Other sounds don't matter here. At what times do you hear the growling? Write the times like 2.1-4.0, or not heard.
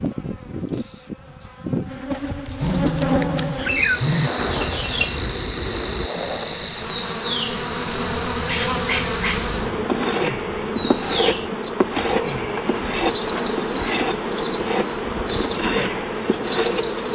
2.2-4.3.